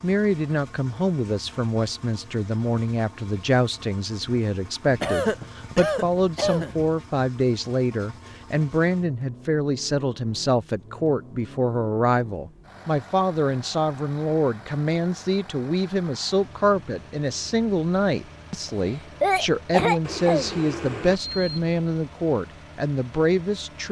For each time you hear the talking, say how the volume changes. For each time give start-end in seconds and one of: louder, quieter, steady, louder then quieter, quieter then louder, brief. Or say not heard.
0.0-23.8 steady.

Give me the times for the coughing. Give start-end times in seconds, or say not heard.
4.8-6.8, 18.6-20.6.